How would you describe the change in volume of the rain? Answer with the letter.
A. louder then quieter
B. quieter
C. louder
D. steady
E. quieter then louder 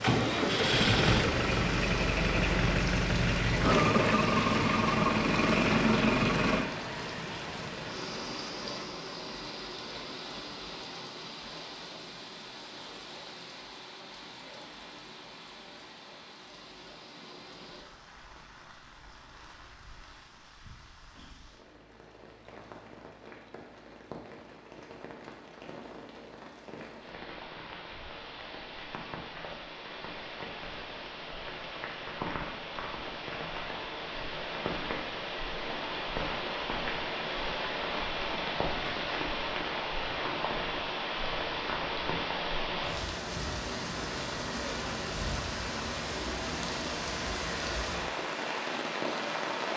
E.